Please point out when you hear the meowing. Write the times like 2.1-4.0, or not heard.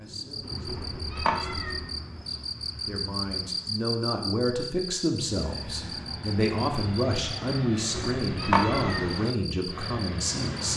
0.7-1.9, 7.9-9.1.